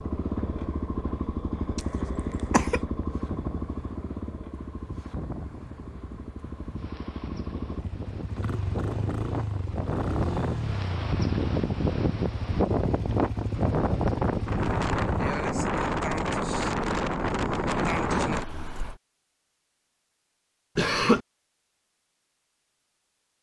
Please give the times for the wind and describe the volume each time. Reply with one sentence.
The wind can be heard from 0.0 to 19.0 s, getting louder.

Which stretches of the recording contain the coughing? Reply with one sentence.
You can hear the coughing from 1.8 to 2.8 s and from 20.8 to 21.2 s.